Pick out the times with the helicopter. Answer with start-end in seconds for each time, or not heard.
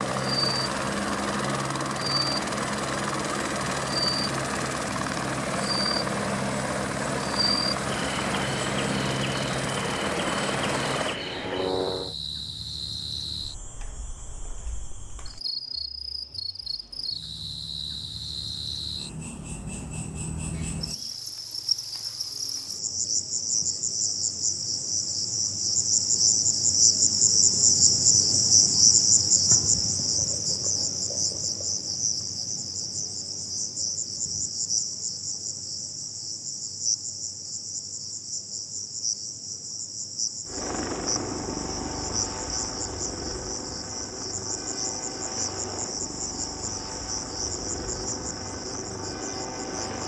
0.0-12.2, 40.5-50.0.